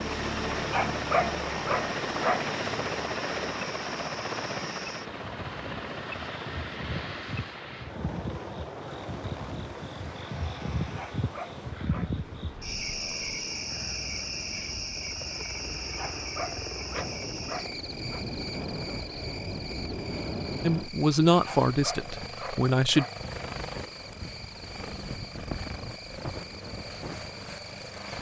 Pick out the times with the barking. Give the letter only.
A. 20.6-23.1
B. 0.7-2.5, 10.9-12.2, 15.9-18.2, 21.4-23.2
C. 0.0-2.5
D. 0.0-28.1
B.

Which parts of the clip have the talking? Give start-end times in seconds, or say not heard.
20.6-23.1.